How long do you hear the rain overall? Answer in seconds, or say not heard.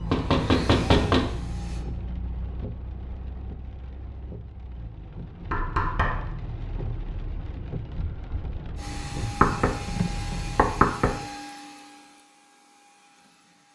11 s.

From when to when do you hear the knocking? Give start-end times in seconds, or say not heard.
0.1-1.4, 5.5-6.3, 9.4-11.2.